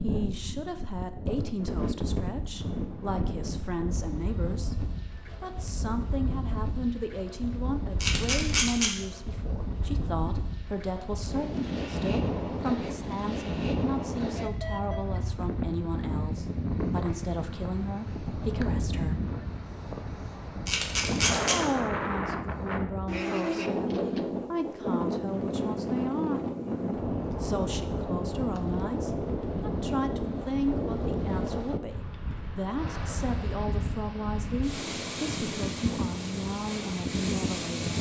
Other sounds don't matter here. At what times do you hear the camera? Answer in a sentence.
The camera can be heard from 8.0 to 8.9 s and from 20.6 to 21.6 s.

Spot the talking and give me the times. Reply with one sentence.
The talking can be heard from 0.0 to 19.2 s, from 21.4 to 26.4 s and from 27.4 to 37.9 s.